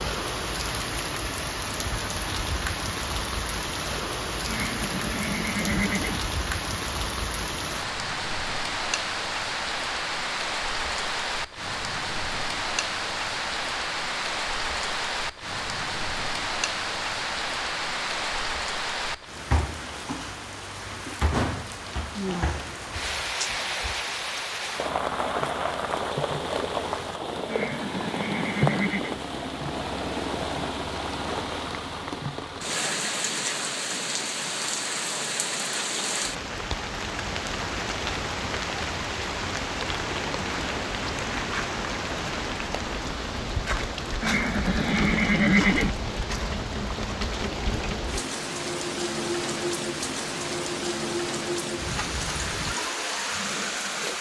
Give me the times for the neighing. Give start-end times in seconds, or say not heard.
4.5-6.2, 27.4-29.2, 44.2-46.0.